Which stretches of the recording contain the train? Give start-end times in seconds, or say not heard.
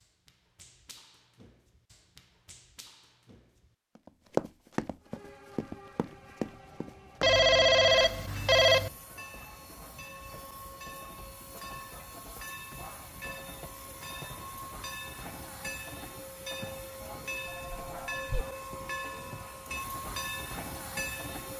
5.0-21.5.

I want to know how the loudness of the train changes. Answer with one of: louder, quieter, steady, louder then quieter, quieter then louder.
louder.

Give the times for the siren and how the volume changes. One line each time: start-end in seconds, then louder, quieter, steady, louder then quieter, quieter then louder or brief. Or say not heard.
not heard.